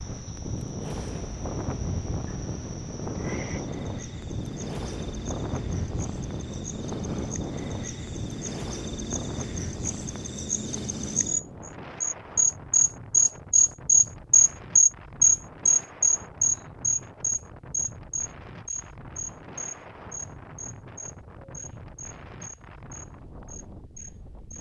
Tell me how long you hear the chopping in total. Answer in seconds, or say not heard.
not heard.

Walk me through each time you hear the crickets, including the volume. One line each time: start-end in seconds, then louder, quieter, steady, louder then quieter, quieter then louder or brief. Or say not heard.
0.0-24.5 louder then quieter.